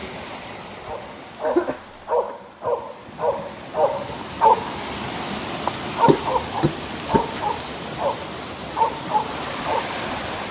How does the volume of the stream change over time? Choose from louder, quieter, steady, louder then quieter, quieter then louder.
louder.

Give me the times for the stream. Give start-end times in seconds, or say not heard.
0.0-10.4.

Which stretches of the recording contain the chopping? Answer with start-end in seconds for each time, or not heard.
not heard.